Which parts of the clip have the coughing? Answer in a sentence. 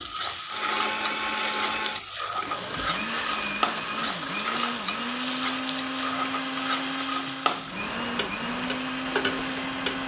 You can't hear the coughing here.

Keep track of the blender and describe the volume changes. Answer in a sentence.
The loudness of the blender stays about the same.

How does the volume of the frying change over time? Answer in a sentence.
The loudness of the frying stays about the same.